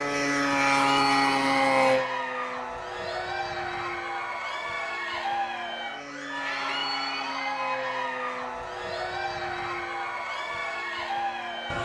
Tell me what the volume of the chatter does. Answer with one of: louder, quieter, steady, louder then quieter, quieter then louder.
steady.